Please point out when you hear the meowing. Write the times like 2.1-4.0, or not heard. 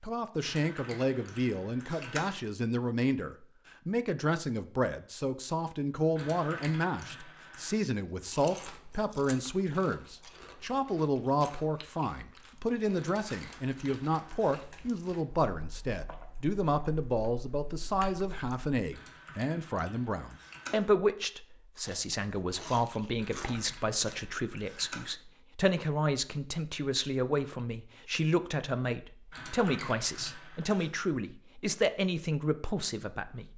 not heard.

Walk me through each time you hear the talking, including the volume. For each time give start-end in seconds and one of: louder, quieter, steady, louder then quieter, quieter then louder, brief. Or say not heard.
0.0-33.5 steady.